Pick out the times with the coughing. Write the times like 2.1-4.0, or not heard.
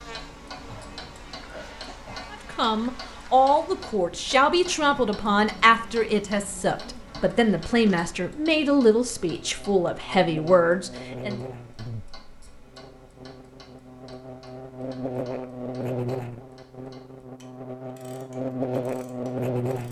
0.7-2.2.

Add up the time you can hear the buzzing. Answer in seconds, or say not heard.
20 s.